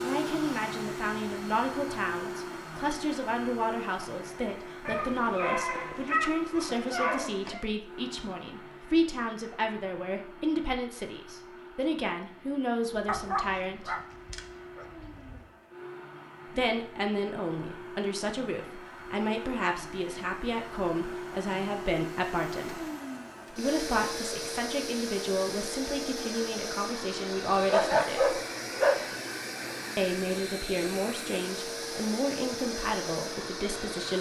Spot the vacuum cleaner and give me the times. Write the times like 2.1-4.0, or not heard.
0.0-34.1.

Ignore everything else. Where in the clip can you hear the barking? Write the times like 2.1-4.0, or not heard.
4.8-7.7, 13.1-15.4, 27.6-29.1.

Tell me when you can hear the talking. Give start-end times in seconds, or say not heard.
0.0-13.9, 16.5-22.8, 23.5-28.4, 29.9-34.1.